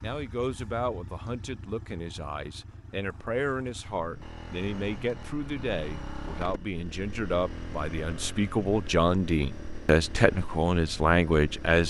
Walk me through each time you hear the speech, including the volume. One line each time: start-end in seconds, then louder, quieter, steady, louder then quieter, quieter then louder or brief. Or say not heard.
0.0-11.8 louder.